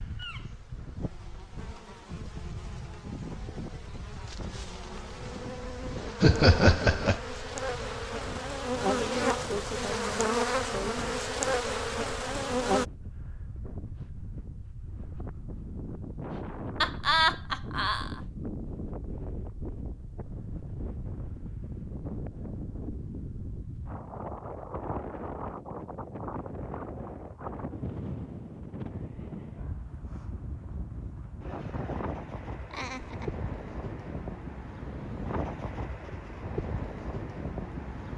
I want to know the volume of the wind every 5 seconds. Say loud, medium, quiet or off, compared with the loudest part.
medium, medium, medium, loud, loud, loud, loud, loud.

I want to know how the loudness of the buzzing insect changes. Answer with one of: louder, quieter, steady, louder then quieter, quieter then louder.
louder.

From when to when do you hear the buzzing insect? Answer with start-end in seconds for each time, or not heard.
0.0-12.8.